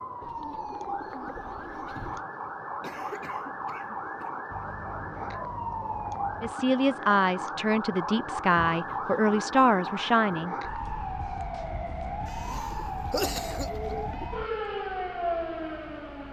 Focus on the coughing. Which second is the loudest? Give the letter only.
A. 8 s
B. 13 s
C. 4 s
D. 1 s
B.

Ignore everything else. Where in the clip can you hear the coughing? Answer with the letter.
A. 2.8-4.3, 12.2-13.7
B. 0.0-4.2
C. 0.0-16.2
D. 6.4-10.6
A.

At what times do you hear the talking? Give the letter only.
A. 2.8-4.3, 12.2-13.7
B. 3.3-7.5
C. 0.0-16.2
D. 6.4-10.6
D.